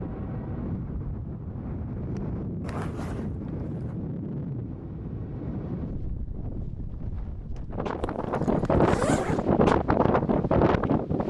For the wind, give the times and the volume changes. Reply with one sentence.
The wind can be heard from 0.0 to 11.2 s, getting louder.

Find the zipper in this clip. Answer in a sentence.
The zipper can be heard from 2.6 to 4.0 s and from 8.0 to 9.4 s.